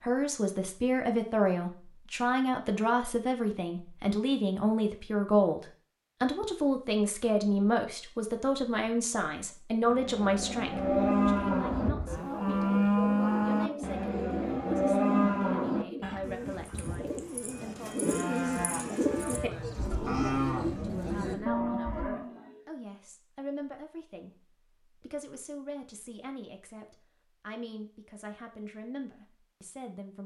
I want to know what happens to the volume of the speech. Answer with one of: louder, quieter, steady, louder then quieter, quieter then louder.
quieter.